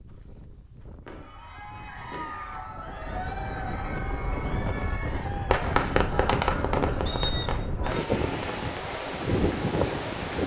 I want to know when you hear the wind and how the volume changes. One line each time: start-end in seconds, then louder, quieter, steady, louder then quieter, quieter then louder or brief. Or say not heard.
0.0-10.4 louder.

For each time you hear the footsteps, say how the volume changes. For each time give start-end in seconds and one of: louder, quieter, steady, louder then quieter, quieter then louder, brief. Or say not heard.
not heard.